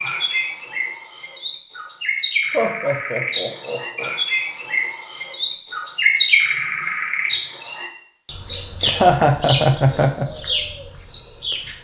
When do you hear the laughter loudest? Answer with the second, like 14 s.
9 s.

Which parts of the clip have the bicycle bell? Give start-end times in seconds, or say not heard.
not heard.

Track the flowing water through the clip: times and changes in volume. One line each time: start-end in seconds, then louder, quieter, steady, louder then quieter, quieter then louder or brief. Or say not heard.
not heard.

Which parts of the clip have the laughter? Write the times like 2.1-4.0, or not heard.
2.5-4.1, 8.8-10.2.